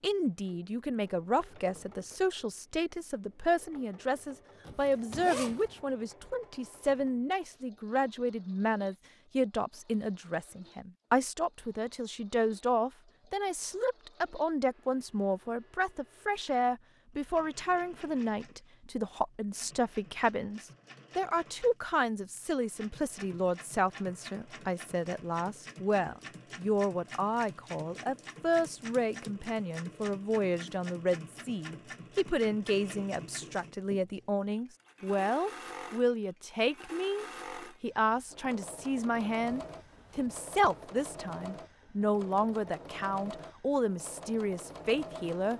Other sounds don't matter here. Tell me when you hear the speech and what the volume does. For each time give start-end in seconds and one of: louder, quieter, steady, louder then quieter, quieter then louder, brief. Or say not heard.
0.0-45.5 steady.